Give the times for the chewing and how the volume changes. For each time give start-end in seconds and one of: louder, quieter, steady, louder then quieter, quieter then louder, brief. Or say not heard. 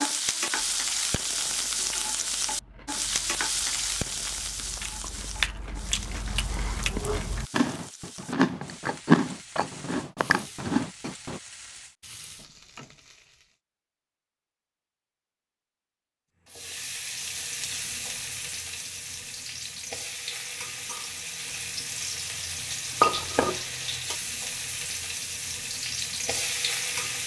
0.5-11.4 louder.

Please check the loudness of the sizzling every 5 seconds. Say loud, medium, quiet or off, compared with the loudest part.
loud, quiet, quiet, medium, loud, loud.